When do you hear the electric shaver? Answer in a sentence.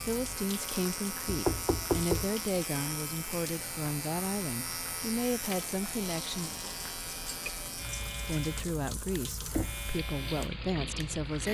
You can hear the electric shaver from 0.0 to 11.5 s.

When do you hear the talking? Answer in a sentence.
You can hear the talking from 0.1 to 6.5 s and from 8.2 to 11.5 s.